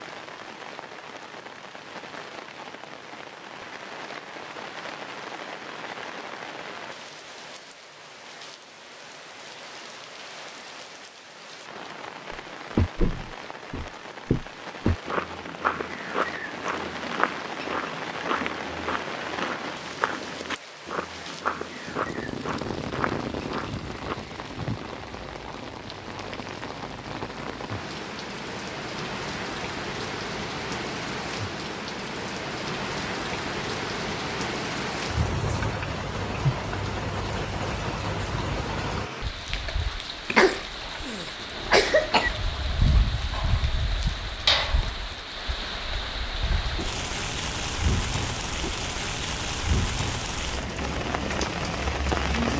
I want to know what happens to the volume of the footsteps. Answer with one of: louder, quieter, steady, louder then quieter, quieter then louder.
quieter.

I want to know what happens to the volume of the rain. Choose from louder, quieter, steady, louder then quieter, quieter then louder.
louder.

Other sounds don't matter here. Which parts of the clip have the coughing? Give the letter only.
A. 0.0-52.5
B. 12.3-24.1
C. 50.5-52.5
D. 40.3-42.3
D.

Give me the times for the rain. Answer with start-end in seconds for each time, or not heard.
0.0-52.5.